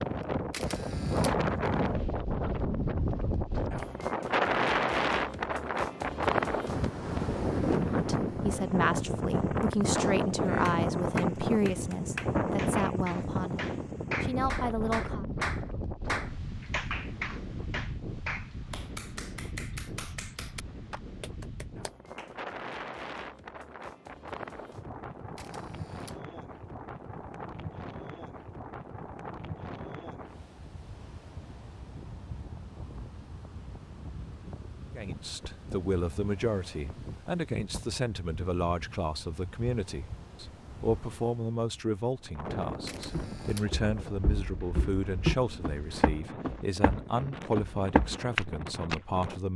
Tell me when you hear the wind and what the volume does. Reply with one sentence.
You can hear the wind from 0.0 to 49.5 s, getting quieter.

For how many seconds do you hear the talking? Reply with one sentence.
The talking can be heard for 22 seconds in total.